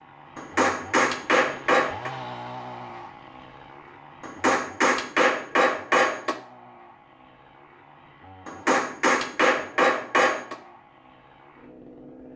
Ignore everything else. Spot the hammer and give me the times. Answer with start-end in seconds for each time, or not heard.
0.3-2.1, 4.2-6.3, 8.4-10.6.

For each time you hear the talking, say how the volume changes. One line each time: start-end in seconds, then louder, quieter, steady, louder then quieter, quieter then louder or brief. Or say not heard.
not heard.